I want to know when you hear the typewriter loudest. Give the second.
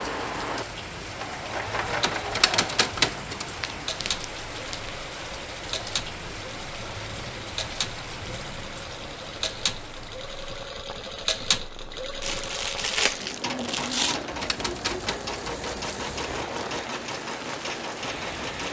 3 s.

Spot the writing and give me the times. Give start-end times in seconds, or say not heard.
not heard.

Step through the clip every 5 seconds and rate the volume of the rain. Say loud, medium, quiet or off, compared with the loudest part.
loud, loud, medium, loud.